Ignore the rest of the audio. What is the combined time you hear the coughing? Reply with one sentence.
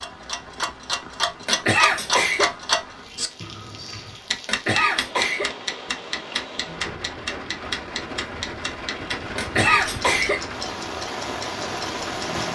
You can hear the coughing for 3 seconds altogether.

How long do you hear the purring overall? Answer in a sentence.
The purring can't be heard in this clip.